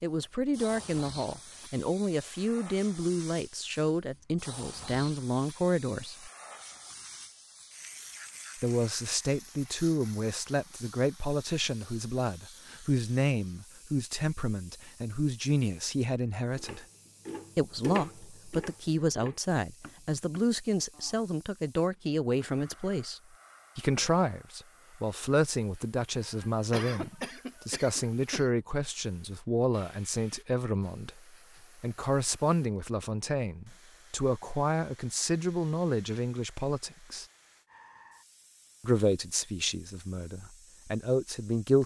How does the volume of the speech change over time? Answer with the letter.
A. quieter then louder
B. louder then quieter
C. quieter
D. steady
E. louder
D.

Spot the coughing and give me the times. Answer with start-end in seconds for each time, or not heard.
26.2-28.5.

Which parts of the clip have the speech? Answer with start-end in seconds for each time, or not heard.
0.0-6.3, 8.6-16.9, 17.6-31.2, 31.8-37.2, 38.8-41.8.